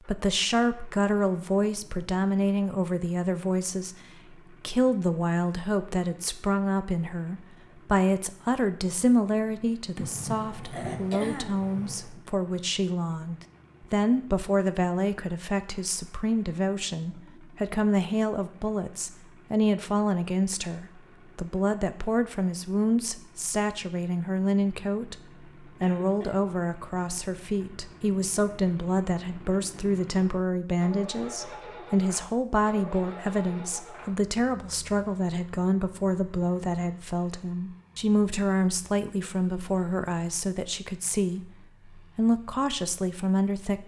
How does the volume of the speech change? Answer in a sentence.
The volume of the speech stays about the same.